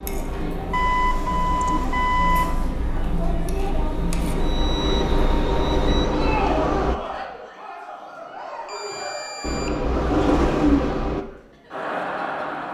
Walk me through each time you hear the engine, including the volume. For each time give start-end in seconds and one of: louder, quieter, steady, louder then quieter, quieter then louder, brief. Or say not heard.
0.0-7.0 louder
9.4-11.2 brief.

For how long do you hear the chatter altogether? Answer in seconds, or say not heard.
13 s.